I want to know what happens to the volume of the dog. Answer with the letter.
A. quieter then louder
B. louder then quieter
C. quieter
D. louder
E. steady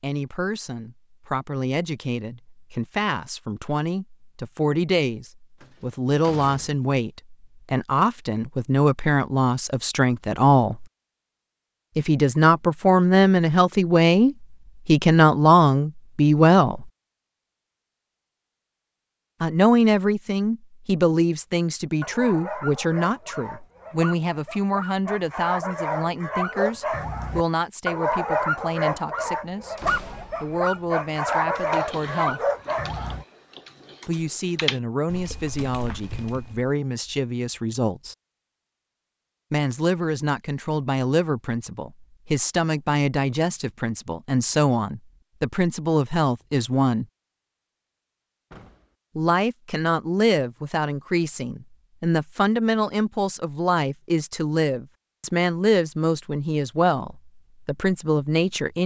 D.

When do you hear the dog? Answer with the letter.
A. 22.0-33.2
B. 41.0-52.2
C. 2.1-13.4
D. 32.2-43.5
A.